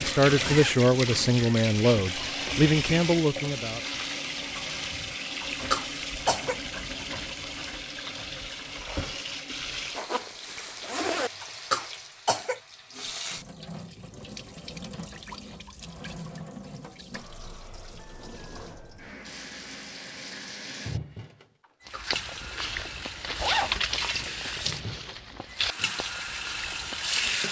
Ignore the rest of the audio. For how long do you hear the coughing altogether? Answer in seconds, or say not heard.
3 s.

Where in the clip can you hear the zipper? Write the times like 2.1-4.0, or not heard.
0.1-1.4, 9.9-11.3, 23.4-23.8.